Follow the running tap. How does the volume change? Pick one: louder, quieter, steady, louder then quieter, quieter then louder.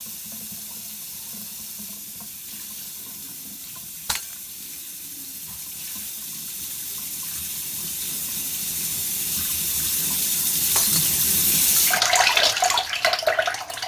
louder.